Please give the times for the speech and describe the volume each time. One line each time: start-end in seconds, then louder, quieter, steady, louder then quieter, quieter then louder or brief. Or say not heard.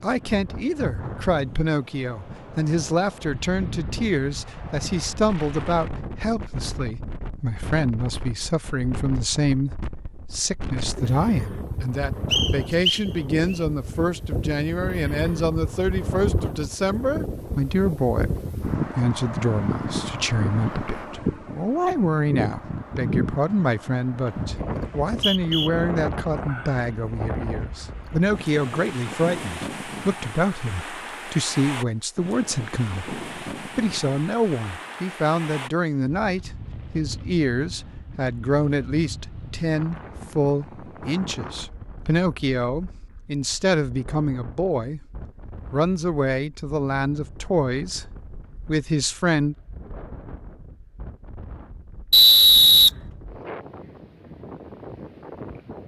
0.0-45.0 steady
45.7-48.0 brief
48.6-49.5 brief.